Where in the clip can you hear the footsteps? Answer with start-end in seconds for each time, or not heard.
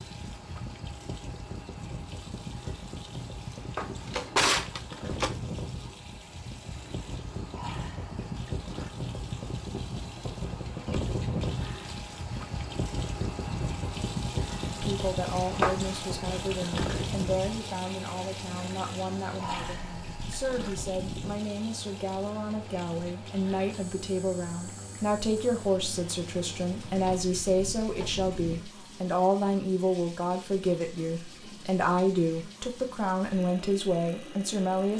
not heard.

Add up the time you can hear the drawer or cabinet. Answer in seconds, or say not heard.
3 s.